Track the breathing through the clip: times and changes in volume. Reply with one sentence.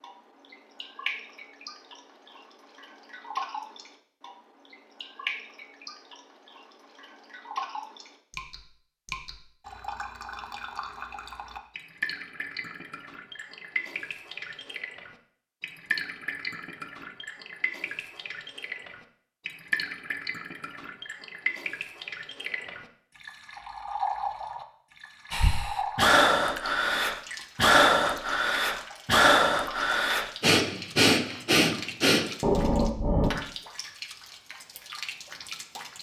The breathing can be heard from 25.3 to 33.3 s, at a steady volume.